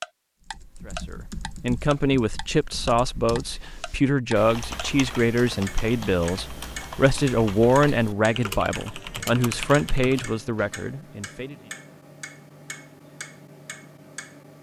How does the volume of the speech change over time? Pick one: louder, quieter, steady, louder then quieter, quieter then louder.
steady.